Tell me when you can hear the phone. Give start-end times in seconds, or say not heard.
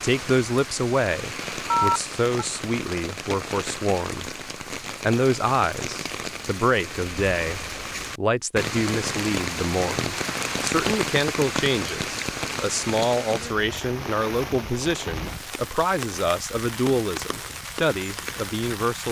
1.7-2.5.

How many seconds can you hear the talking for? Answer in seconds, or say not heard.
18 s.